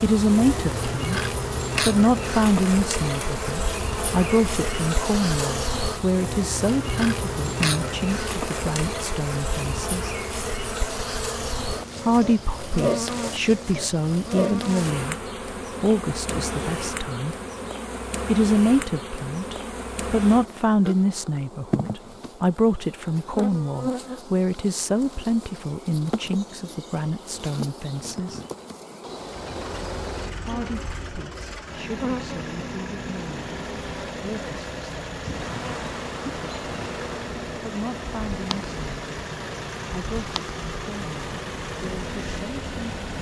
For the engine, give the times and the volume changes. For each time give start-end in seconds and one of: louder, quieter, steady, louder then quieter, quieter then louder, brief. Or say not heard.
29.1-43.1 steady.